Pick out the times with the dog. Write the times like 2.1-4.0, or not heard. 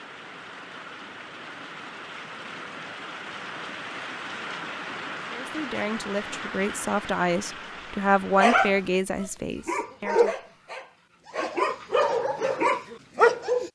8.3-13.7.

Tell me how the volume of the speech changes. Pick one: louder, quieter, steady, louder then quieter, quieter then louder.
louder then quieter.